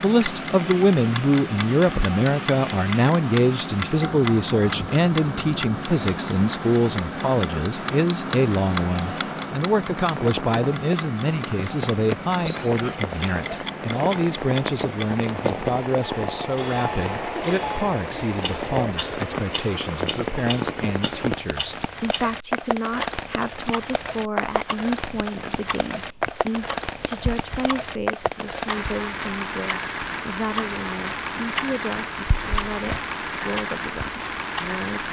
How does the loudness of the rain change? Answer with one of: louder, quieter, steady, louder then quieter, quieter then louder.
louder.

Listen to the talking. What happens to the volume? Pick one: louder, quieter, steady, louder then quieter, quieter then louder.
quieter.